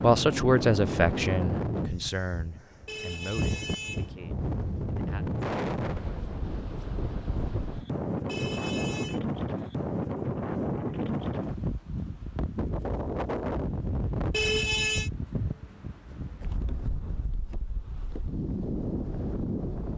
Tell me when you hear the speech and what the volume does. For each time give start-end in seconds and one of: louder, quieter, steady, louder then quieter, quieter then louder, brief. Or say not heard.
0.0-5.2 quieter.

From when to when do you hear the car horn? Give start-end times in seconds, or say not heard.
2.9-4.2, 8.2-9.2, 14.3-15.1.